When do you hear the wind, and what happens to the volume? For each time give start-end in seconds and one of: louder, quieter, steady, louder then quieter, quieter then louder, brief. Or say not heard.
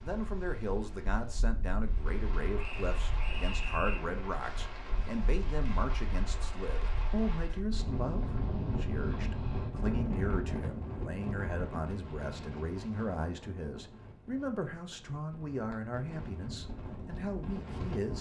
0.0-18.1 louder then quieter.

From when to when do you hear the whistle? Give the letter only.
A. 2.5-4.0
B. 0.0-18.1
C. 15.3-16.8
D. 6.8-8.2
A.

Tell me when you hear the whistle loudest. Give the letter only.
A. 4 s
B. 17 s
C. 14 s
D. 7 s
A.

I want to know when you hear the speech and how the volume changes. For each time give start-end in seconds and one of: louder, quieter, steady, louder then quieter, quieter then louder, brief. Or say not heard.
0.0-18.1 steady.